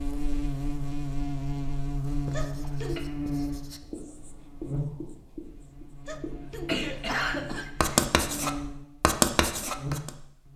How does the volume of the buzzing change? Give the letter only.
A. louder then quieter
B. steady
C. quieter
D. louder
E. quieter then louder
E.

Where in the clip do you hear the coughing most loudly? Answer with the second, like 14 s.
7 s.